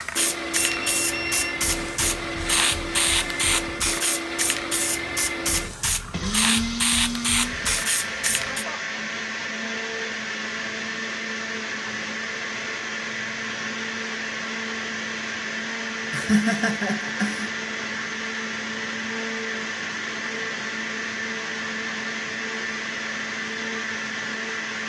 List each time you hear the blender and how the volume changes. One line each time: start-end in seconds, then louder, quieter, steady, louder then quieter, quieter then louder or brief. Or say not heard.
0.0-24.8 steady.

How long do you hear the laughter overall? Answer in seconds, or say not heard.
2 s.